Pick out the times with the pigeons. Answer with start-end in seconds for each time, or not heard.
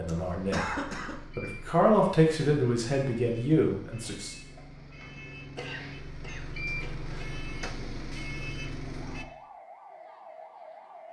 not heard.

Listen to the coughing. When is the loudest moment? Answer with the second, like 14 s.
1 s.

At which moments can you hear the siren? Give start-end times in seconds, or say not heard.
8.9-11.0.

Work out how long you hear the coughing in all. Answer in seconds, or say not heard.
3 s.